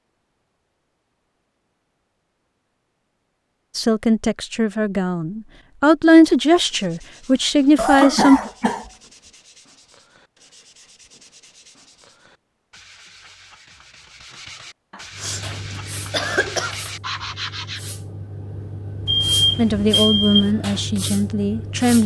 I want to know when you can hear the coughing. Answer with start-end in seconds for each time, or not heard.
7.8-8.9, 14.9-15.4, 16.1-16.8.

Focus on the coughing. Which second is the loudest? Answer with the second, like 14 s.
8 s.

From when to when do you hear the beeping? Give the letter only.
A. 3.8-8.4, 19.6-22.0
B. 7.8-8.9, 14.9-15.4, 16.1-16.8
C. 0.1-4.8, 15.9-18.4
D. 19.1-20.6
D.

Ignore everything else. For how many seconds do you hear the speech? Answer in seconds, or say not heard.
7 s.